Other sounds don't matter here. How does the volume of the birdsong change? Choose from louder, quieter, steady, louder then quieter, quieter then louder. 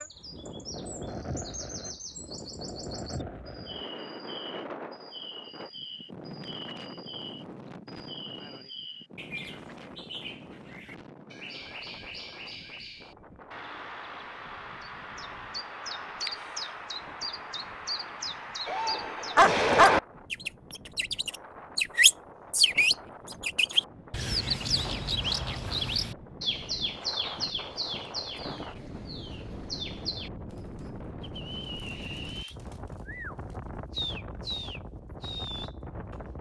louder then quieter.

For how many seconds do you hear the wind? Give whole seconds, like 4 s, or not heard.
36 s.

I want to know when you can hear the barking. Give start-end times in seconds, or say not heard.
18.6-20.0.